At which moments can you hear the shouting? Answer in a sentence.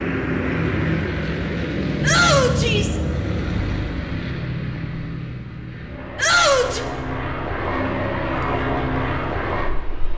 The shouting can be heard from 2.0 to 3.0 s and from 6.2 to 6.8 s.